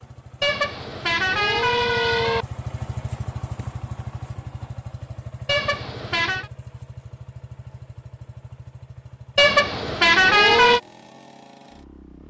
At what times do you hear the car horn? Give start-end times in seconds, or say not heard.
0.4-2.5, 5.5-6.5, 9.3-10.8.